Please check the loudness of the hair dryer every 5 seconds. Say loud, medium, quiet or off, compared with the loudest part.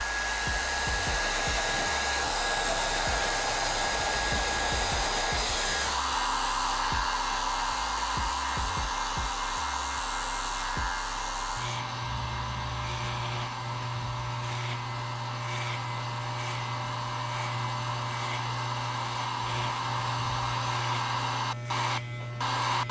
loud, loud, medium, medium, loud.